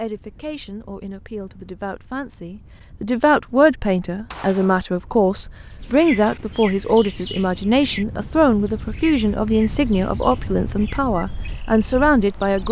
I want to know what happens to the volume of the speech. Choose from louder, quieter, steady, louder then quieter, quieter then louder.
louder.